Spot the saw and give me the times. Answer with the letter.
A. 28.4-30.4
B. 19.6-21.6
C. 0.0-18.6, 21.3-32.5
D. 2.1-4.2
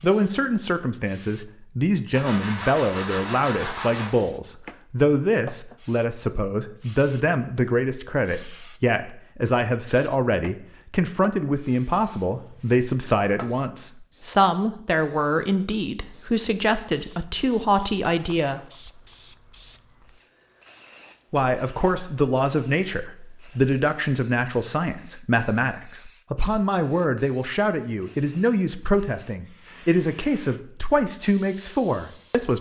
D.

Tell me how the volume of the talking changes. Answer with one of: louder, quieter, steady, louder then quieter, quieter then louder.
steady.